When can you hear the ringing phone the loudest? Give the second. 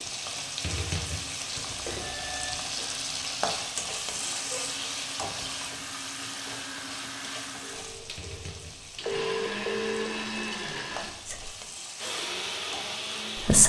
9 s.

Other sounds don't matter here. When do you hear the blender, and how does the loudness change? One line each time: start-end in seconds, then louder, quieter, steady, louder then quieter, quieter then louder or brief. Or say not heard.
0.2-13.6 louder.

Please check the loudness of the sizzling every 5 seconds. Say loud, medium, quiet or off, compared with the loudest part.
loud, medium, medium.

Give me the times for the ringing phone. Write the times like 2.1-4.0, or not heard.
1.6-2.6, 7.6-10.1.